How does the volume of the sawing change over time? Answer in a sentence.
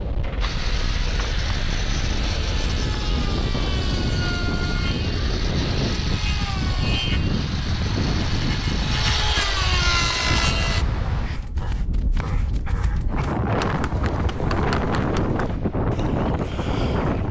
The loudness of the sawing goes up.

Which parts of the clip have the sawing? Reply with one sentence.
The sawing can be heard from 0.4 to 10.8 s.